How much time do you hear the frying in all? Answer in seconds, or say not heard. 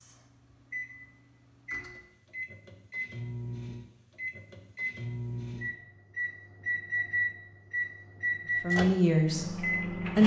not heard.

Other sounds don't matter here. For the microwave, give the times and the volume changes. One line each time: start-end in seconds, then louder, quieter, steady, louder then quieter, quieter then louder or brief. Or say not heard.
0.0-10.2 louder.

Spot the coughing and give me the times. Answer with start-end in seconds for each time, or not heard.
not heard.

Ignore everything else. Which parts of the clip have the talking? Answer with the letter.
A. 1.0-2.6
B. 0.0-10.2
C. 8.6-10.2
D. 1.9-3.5
C.